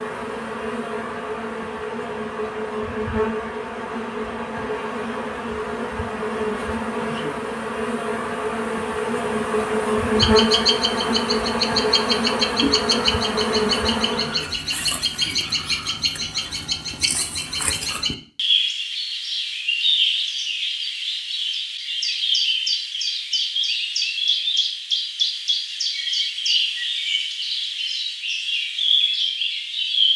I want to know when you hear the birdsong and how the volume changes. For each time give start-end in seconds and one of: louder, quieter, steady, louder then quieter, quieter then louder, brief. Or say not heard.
10.2-30.1 steady.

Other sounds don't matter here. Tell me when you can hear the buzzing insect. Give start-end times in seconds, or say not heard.
0.0-14.5.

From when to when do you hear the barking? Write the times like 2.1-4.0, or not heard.
not heard.